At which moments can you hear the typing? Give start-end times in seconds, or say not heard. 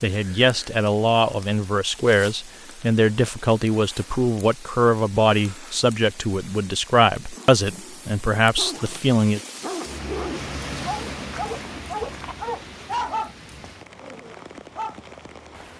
not heard.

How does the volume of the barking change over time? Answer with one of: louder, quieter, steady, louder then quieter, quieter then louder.
louder then quieter.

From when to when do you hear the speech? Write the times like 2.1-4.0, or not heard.
0.0-9.4.